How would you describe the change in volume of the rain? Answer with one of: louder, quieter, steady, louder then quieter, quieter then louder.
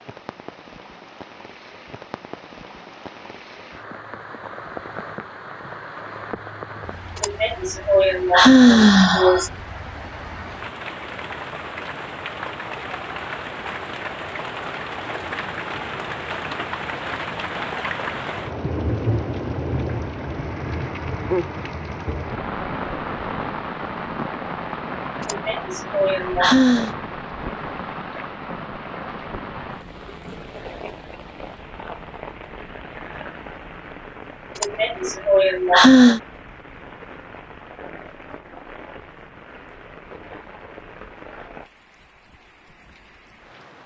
louder then quieter.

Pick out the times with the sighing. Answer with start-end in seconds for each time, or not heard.
7.2-9.5, 25.2-26.9, 34.6-36.2.